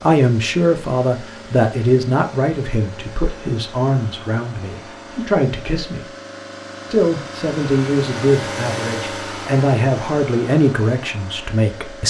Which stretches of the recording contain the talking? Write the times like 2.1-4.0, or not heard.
0.0-6.1, 6.9-12.0.